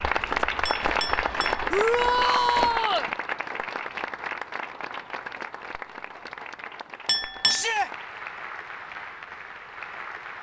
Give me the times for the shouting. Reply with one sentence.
The shouting can be heard from 1.7 to 3.1 s and from 7.5 to 7.9 s.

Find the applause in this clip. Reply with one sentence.
You can hear the applause from 0.0 to 10.3 s.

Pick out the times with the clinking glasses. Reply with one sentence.
You can hear the clinking glasses from 0.7 to 1.6 s and from 7.0 to 7.7 s.